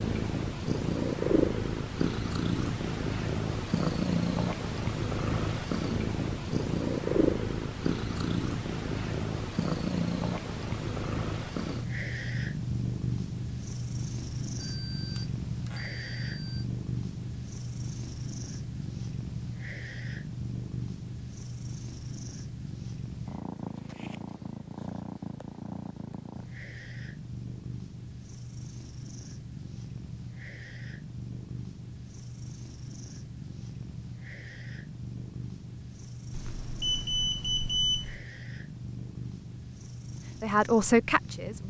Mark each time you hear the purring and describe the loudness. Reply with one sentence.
You can hear the purring from 0.0 to 41.6 s, getting quieter.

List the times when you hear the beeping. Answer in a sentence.
You can hear the beeping from 14.6 to 16.6 s and from 36.3 to 38.2 s.